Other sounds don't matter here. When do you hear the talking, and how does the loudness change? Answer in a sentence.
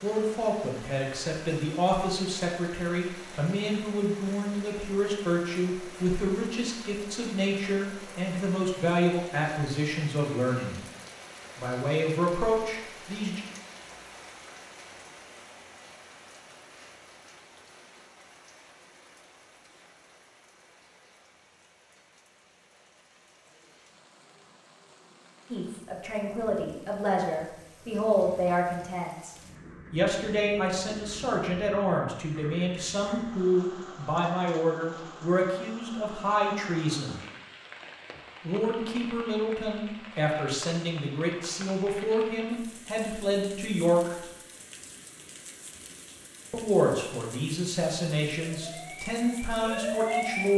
The talking can be heard from 0.0 to 10.8 s, at a steady volume; briefly from 11.6 to 13.4 s; from 25.5 to 37.2 s, at a steady volume; from 38.4 to 44.1 s, at a steady volume; and from 46.5 to 50.5 s, at a steady volume.